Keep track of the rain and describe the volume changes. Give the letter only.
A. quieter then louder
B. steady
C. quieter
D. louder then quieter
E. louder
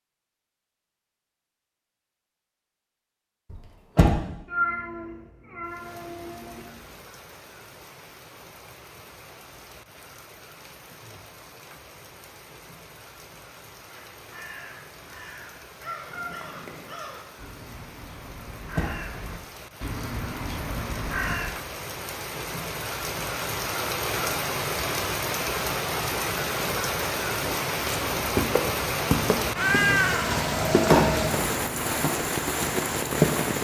E.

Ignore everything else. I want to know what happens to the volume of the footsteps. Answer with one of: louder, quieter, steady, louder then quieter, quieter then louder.
quieter.